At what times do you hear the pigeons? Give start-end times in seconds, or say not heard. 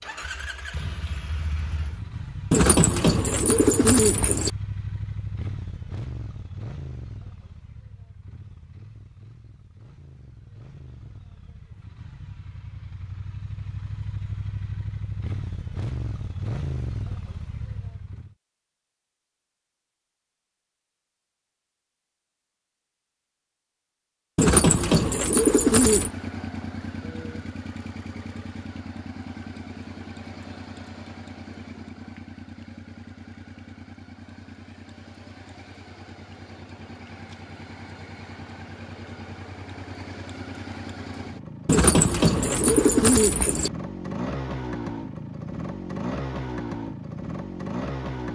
2.5-4.5, 24.4-26.1, 41.6-43.7.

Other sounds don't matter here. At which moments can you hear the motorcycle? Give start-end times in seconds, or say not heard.
0.0-18.4, 25.9-48.2.